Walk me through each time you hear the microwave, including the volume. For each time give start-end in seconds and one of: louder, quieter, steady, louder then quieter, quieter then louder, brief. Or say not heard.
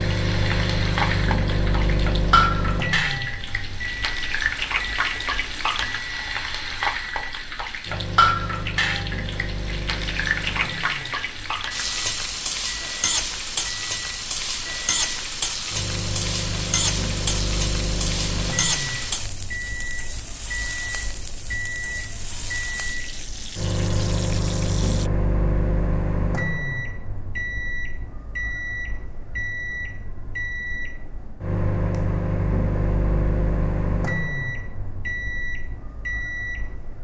0.0-36.9 quieter then louder.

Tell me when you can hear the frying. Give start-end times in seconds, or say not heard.
0.0-25.1.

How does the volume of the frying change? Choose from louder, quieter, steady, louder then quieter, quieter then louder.
quieter.